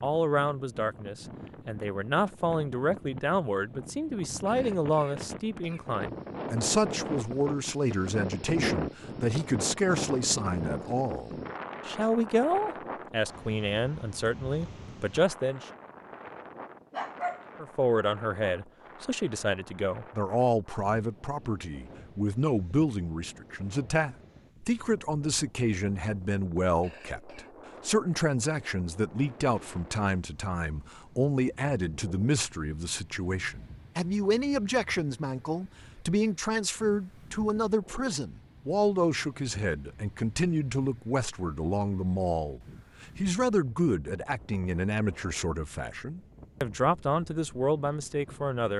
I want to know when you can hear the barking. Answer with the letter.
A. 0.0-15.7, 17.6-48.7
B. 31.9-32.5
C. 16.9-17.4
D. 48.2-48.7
C.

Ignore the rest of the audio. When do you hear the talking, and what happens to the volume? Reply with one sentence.
You can hear the talking from 0.0 to 15.7 s, at a steady volume; and from 17.6 to 48.7 s, at a steady volume.